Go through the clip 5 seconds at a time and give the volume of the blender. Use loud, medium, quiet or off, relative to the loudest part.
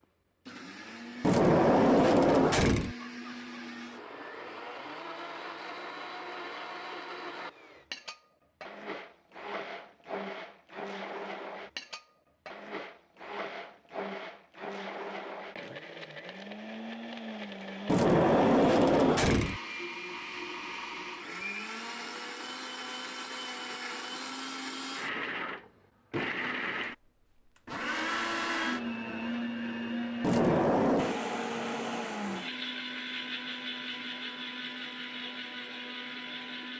medium, medium, medium, medium, medium, loud, loud, medium.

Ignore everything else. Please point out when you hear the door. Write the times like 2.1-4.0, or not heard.
1.2-3.0, 17.9-19.6, 30.2-31.2.